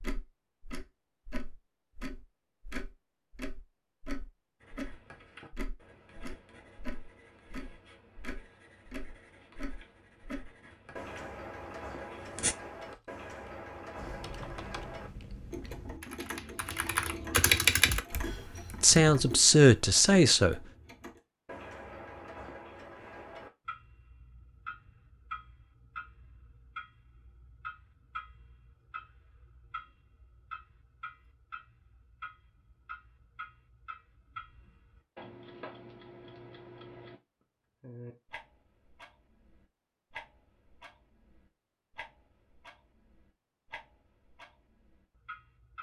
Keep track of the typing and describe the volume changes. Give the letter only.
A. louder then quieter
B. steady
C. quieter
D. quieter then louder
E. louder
A.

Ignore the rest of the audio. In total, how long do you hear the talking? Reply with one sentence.
You can hear the talking for 2 seconds altogether.